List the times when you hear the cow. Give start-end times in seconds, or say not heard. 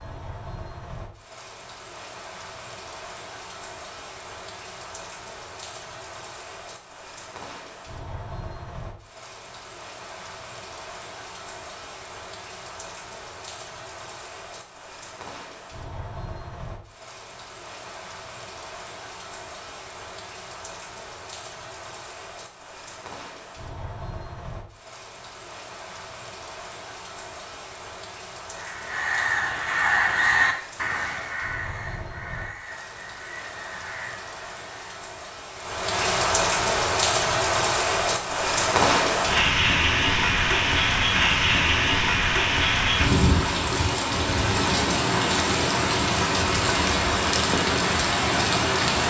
not heard.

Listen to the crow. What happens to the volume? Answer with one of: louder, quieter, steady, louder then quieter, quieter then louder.
quieter.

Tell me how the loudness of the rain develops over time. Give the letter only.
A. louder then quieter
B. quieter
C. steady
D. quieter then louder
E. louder
E.